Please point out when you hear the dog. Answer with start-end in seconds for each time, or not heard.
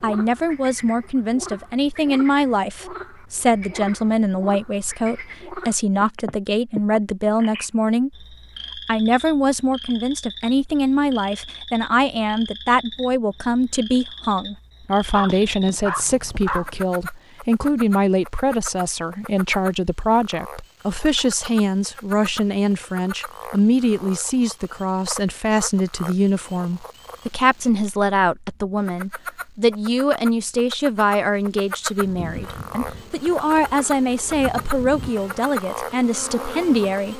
15.1-16.7.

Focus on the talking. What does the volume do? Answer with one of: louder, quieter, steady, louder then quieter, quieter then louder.
steady.